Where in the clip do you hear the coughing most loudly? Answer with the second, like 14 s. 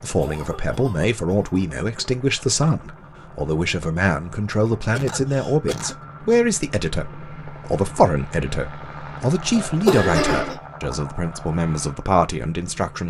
10 s.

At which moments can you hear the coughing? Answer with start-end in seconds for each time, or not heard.
0.1-1.6, 4.7-6.0, 9.6-10.6.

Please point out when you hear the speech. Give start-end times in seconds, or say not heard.
0.0-13.0.